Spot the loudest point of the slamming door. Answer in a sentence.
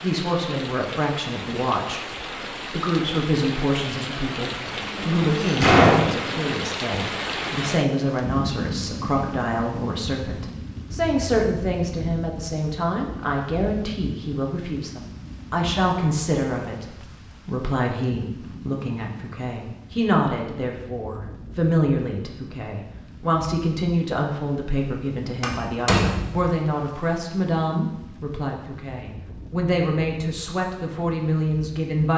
The loudest moment of the slamming door is at 6 seconds.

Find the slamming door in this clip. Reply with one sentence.
You can hear the slamming door from 4.7 to 6.5 s and from 25.4 to 26.4 s.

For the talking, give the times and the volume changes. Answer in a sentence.
The talking can be heard briefly from 0.0 to 2.0 s; and from 2.7 to 32.1 s, at a steady volume.